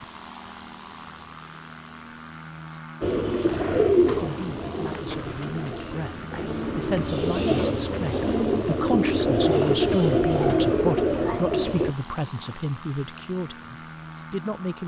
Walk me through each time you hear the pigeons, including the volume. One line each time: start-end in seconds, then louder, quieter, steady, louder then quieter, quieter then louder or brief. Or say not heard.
3.0-11.9 quieter then louder.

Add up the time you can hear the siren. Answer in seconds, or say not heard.
not heard.